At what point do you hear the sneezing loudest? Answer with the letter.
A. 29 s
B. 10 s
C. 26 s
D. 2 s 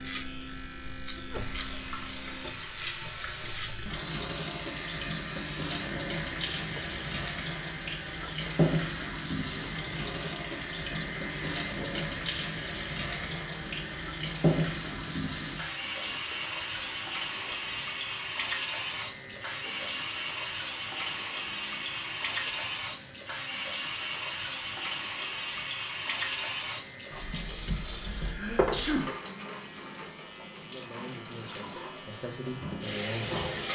A.